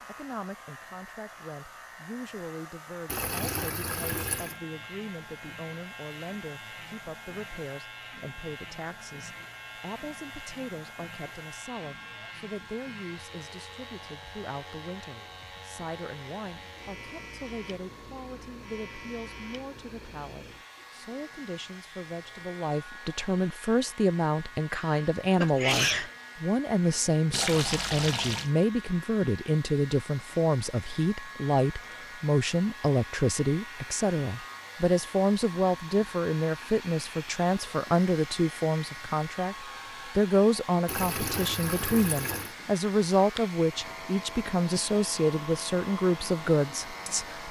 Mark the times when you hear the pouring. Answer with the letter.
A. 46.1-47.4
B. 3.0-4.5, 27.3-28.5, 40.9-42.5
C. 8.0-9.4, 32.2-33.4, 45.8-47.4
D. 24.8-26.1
B.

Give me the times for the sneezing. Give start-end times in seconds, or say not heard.
24.8-26.1.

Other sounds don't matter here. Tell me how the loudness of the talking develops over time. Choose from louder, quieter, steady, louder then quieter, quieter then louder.
louder.